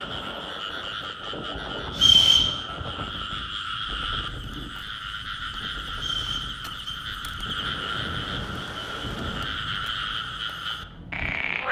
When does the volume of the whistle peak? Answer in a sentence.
The loudest moment of the whistle is at 2 seconds.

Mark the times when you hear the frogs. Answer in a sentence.
The frogs can be heard from 0.0 to 11.6 s.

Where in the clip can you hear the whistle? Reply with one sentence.
You can hear the whistle from 1.9 to 2.5 s and from 5.9 to 7.0 s.